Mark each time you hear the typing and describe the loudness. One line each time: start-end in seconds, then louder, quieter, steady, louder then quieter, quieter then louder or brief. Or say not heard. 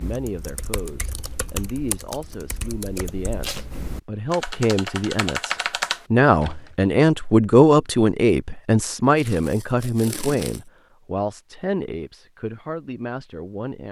0.0-6.8 louder.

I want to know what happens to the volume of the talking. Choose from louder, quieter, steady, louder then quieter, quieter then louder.
louder then quieter.